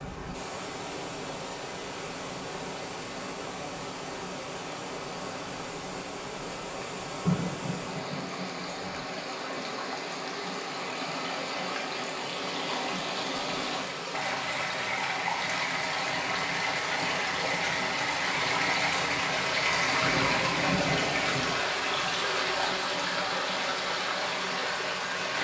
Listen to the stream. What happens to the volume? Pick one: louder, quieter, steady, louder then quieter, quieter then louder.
louder.